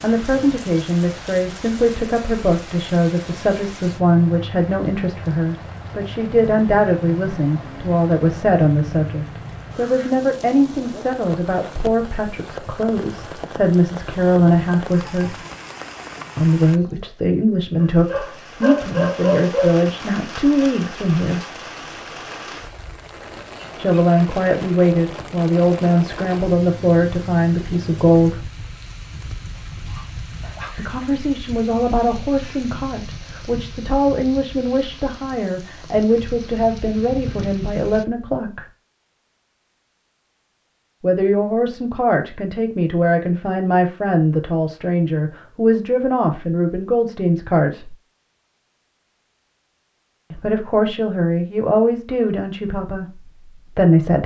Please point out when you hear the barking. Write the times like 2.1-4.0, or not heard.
17.8-19.8, 29.6-31.1.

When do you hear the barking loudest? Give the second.
19 s.